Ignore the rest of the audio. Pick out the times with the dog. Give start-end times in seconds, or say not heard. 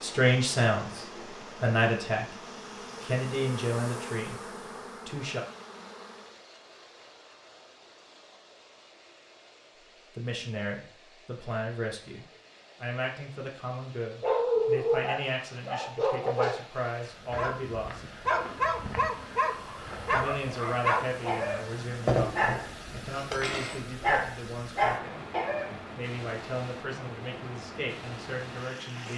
14.2-16.6, 17.3-25.8.